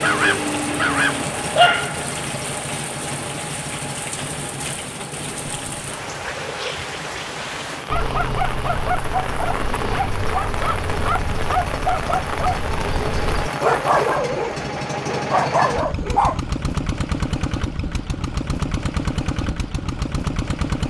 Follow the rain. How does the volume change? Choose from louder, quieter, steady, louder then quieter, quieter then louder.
steady.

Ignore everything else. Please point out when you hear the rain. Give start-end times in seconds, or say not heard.
0.0-14.2.